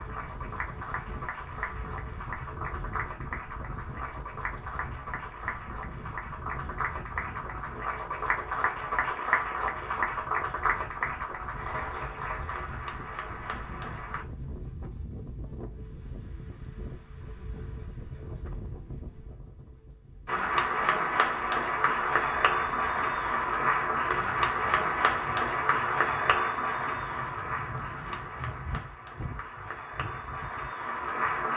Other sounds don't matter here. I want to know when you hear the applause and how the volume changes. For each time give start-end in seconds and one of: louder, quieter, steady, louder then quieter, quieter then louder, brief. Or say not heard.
0.0-14.2 louder then quieter
20.2-31.5 quieter.